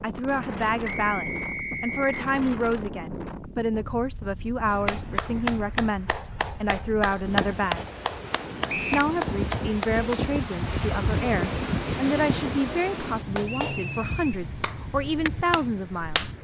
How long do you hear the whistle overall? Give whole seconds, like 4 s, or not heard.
3 s.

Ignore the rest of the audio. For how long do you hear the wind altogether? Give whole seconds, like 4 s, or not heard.
16 s.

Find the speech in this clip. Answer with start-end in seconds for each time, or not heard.
0.0-7.8, 8.9-16.3.